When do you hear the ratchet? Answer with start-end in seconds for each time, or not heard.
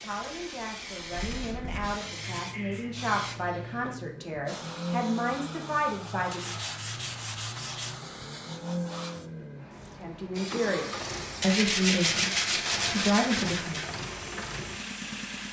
not heard.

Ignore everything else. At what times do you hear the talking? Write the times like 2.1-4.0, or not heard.
0.0-6.5, 10.0-13.9.